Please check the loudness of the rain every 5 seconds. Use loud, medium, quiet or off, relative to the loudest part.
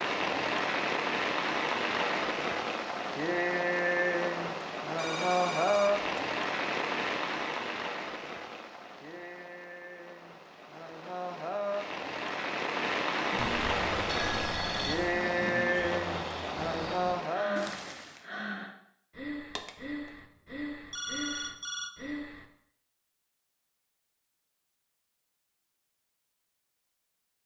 loud, loud, loud, loud, off, off.